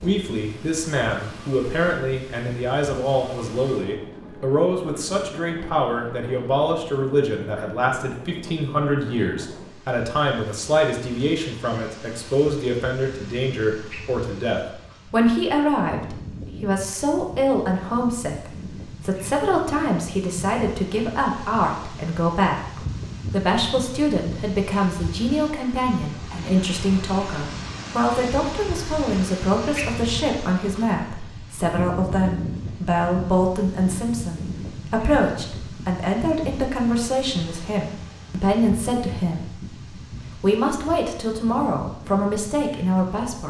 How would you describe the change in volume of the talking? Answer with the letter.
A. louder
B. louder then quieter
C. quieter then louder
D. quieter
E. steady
E.